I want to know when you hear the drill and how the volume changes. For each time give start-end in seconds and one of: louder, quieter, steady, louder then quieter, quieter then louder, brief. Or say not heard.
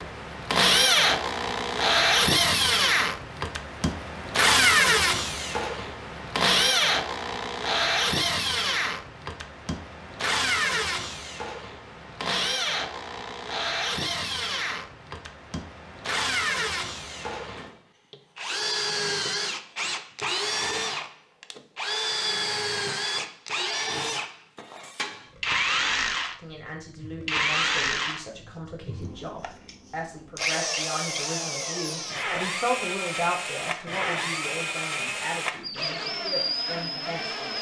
0.0-37.5 quieter.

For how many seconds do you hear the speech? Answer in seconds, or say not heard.
11 s.